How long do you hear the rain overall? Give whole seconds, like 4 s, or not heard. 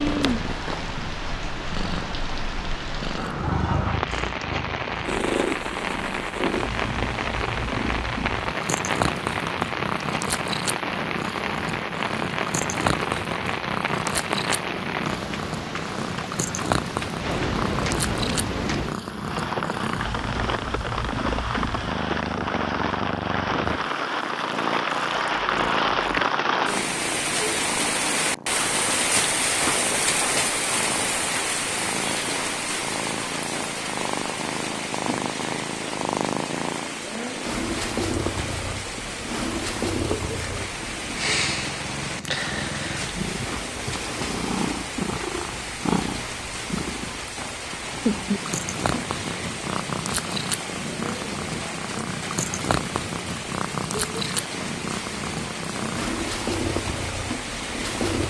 58 s.